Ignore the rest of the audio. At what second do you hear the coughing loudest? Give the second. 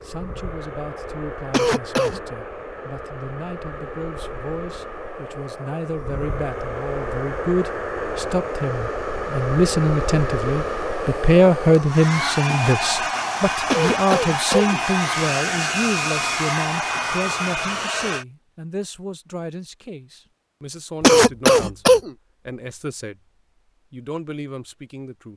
21 s.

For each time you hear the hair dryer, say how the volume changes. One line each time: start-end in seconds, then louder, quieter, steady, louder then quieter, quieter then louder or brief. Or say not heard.
0.0-18.2 louder.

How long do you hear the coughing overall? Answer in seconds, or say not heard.
3 s.